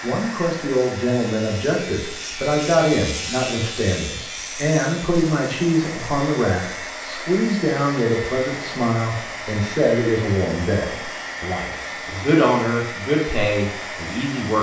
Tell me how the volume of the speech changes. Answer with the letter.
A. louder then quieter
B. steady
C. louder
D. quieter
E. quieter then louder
B.